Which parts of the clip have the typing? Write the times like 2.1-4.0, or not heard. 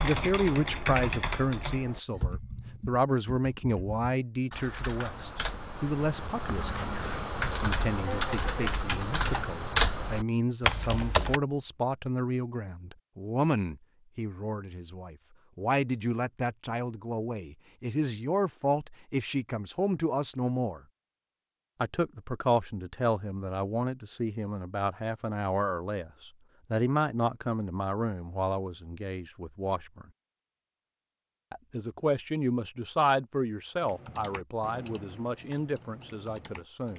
0.0-11.4, 33.8-36.9.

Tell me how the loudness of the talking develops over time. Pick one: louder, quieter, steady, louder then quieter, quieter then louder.
steady.